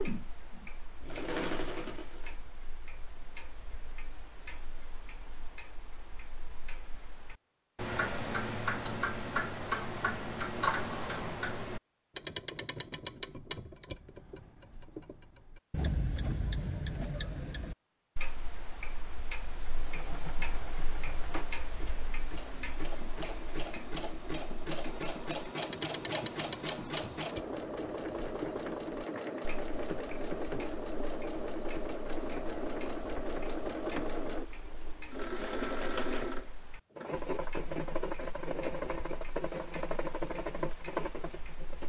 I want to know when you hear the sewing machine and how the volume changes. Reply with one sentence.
The sewing machine can be heard briefly from 0.0 to 2.4 s; and from 19.6 to 41.8 s, getting louder.